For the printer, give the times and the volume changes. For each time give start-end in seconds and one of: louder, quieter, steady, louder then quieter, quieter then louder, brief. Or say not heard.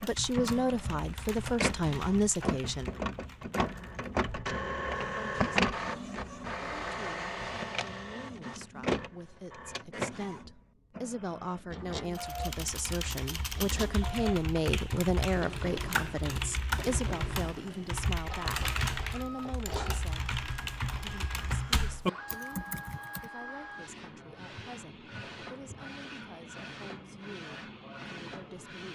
0.0-28.9 quieter.